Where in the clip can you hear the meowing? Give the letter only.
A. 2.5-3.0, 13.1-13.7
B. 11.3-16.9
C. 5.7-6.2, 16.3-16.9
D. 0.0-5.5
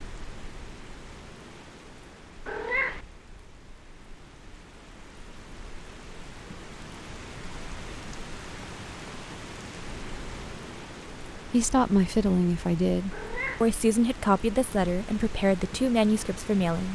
A.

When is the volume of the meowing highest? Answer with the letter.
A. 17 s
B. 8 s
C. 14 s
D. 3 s
D.